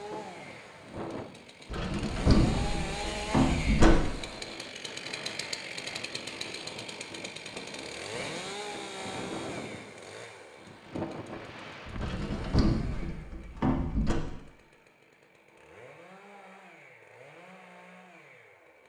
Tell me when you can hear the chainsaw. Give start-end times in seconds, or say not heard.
0.0-18.8.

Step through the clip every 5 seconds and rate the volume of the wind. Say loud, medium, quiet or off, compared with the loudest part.
loud, loud, loud, off.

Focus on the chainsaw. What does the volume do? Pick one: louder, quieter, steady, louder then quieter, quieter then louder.
quieter.